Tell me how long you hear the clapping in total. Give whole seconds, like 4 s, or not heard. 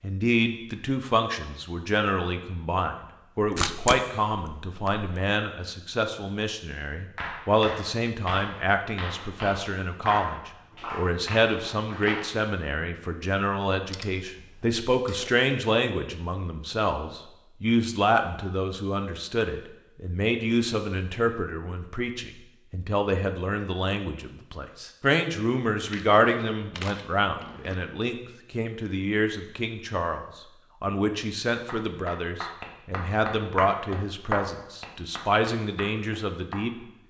10 s.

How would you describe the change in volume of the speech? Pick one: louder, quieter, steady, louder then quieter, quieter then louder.
steady.